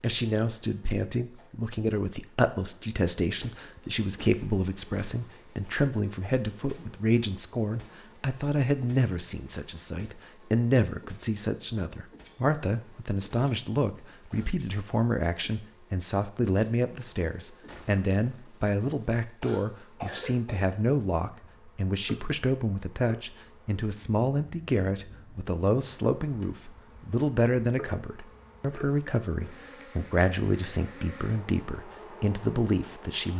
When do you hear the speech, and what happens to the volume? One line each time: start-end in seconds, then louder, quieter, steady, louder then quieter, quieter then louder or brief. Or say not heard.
0.0-33.3 steady.